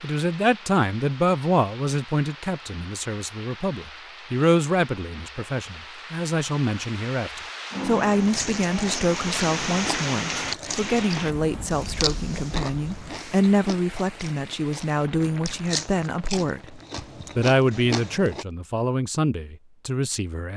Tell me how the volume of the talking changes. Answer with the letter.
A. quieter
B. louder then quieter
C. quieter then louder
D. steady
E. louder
D.